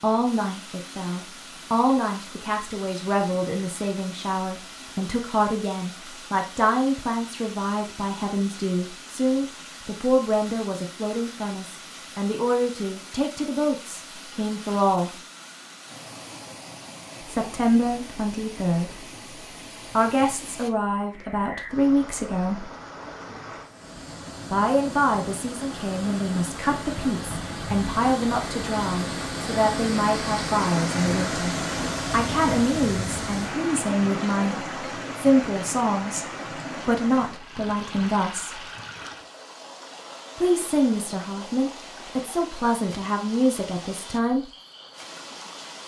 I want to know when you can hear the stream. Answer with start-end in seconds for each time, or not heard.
0.0-45.8.